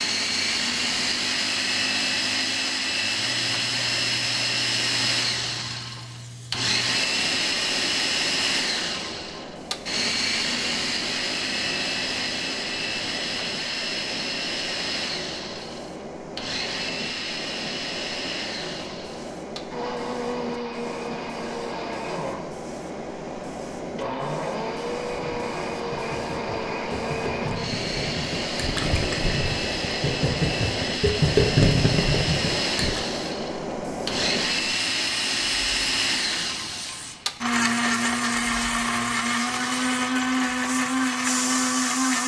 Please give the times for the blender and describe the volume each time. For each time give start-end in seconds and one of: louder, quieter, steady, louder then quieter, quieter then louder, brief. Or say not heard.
0.0-42.2 quieter then louder.